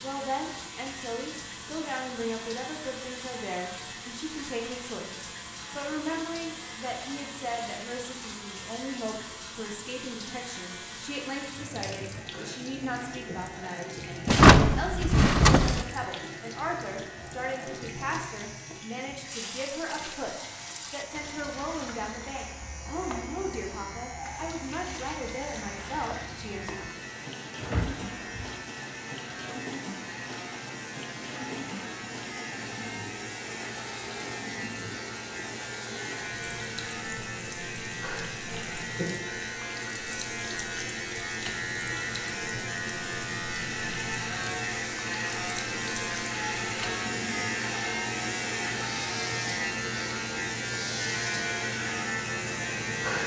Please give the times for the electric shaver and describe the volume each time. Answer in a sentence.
You can hear the electric shaver from 0.0 to 53.2 s, getting louder.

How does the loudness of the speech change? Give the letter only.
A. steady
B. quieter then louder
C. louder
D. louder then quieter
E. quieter
A.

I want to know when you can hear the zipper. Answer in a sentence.
You can't hear the zipper here.